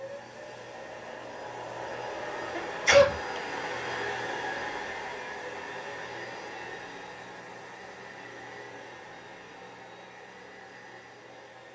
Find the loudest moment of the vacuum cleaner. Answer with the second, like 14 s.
4 s.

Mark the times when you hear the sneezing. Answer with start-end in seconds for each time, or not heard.
2.5-3.6.